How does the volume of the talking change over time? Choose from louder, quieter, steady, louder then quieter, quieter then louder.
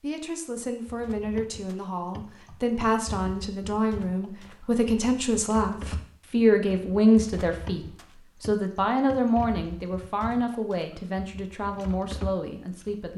louder then quieter.